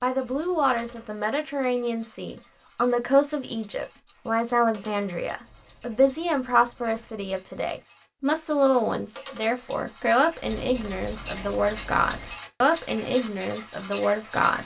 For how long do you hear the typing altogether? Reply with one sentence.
You can't hear the typing here.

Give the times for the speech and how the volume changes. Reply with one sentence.
The speech can be heard from 0.0 to 14.6 s, at a steady volume.